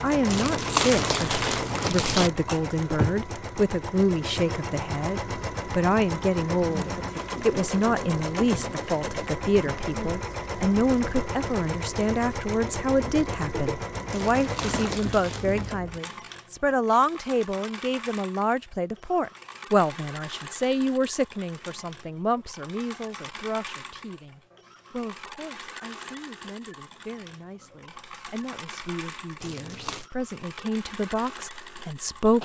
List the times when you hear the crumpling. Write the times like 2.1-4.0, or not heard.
0.2-2.3, 14.1-15.8, 29.4-30.1.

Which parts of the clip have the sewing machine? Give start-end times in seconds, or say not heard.
0.0-32.4.